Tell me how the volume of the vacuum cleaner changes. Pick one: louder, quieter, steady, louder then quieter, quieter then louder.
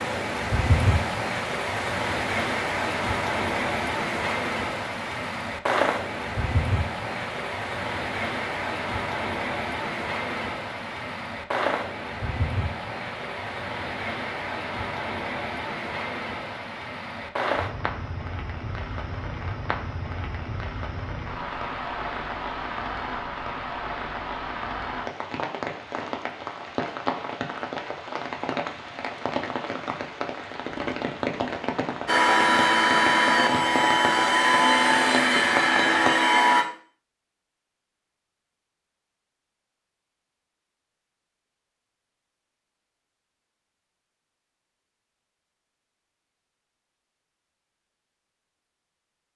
steady.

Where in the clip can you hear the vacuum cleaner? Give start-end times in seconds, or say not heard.
32.0-36.6.